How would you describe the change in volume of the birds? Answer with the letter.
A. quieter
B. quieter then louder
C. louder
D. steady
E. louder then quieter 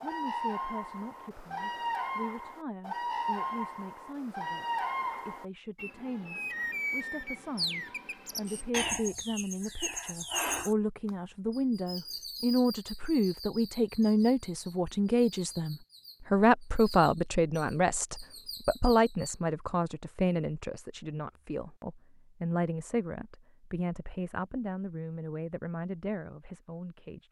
A.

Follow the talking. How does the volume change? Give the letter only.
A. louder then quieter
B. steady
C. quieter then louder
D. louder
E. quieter
A.